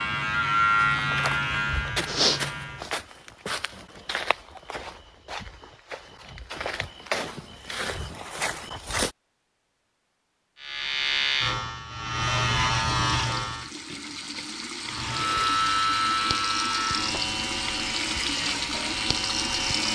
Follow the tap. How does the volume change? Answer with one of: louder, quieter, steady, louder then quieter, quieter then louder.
louder.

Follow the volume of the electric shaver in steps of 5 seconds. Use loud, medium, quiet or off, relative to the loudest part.
loud, off, loud, loud.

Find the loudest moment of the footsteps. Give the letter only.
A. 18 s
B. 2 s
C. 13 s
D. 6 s
B.